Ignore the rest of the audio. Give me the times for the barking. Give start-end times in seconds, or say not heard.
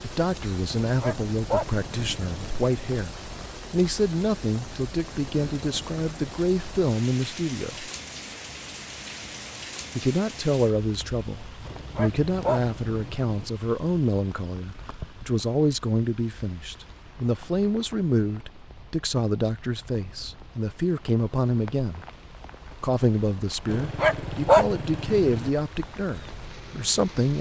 0.8-2.5, 11.7-13.4, 23.6-25.5.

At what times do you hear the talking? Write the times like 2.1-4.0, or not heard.
0.0-7.9, 9.9-22.1, 22.8-27.3.